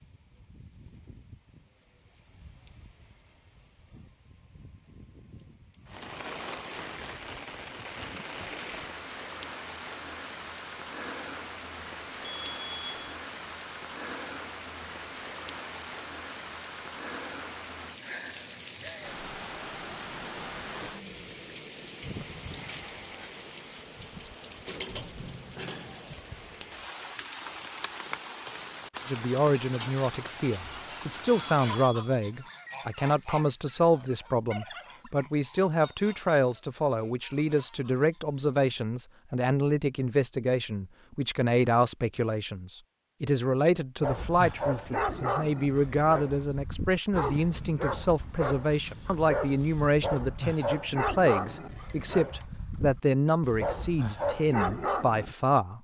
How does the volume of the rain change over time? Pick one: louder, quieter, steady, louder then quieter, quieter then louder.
louder.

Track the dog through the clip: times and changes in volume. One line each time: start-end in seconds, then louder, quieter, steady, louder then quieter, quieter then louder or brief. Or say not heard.
44.0-55.4 steady.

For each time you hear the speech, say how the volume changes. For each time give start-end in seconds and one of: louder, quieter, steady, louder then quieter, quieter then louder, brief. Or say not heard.
29.1-55.7 steady.